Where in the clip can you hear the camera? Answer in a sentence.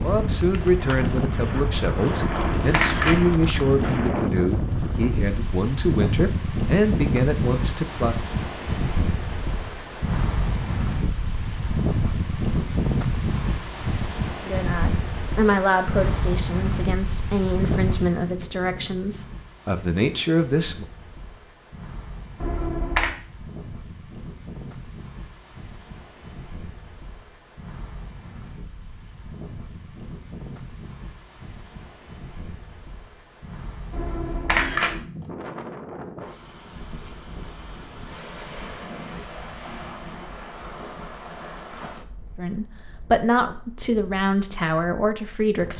You can hear the camera from 2.1 to 3.2 s, from 22.4 to 23.1 s and from 33.9 to 35.0 s.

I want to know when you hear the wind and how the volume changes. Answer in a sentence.
The wind can be heard from 0.0 to 45.7 s, getting quieter.